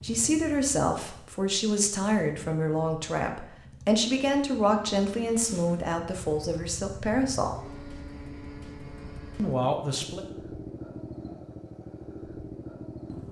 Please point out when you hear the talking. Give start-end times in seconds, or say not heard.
0.0-7.5, 9.3-10.2.